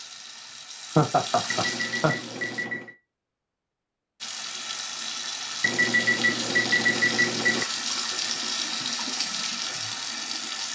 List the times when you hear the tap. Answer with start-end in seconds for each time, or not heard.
0.0-2.7, 4.2-10.7.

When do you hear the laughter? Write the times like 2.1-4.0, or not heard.
0.9-2.2.